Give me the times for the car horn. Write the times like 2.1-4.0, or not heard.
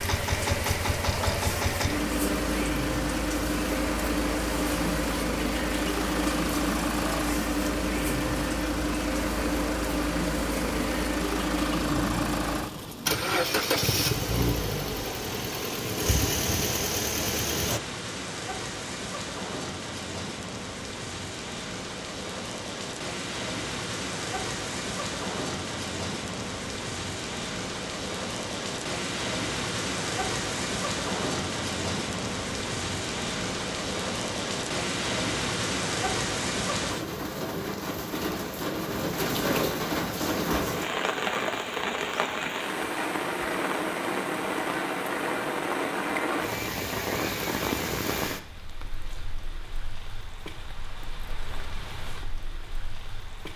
not heard.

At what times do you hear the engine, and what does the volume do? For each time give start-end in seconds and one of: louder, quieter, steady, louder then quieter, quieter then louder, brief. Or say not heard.
0.0-17.8 steady.